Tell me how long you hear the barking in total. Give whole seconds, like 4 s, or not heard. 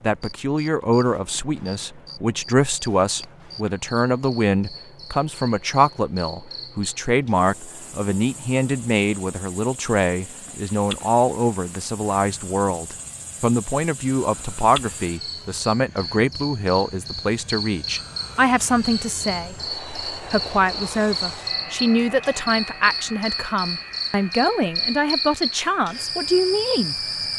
not heard.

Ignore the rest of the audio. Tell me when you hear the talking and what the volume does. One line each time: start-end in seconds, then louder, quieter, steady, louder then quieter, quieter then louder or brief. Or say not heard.
0.0-26.9 steady.